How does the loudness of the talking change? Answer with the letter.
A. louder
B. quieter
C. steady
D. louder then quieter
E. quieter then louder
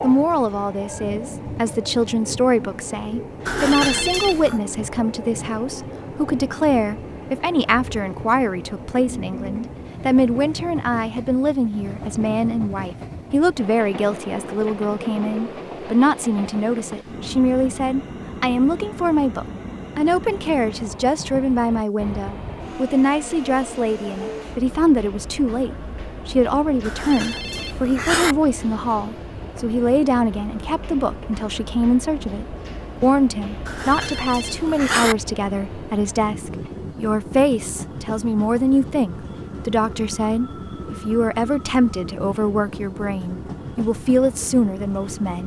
C.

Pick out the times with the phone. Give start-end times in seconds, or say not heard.
3.5-4.6, 26.8-28.4, 33.6-35.1.